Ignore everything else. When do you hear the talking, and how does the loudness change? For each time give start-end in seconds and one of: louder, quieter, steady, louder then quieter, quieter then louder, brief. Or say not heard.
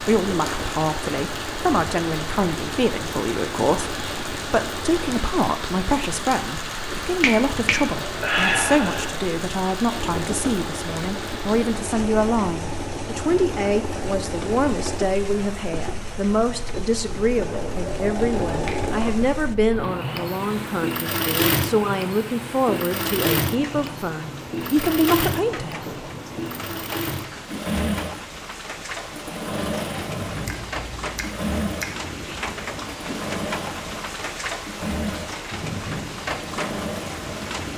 0.1-25.9 steady.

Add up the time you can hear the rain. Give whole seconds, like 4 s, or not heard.
38 s.